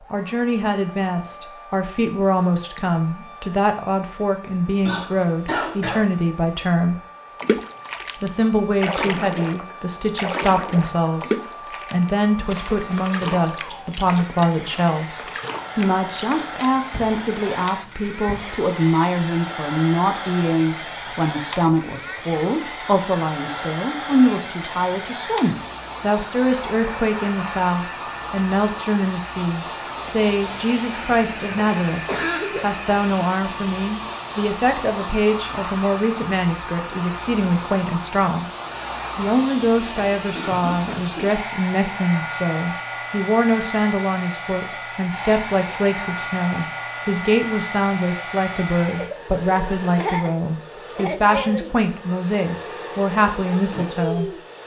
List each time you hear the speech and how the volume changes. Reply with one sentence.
You can hear the speech from 0.0 to 7.0 s, at a steady volume; from 8.2 to 38.5 s, at a steady volume; and from 39.1 to 54.4 s, at a steady volume.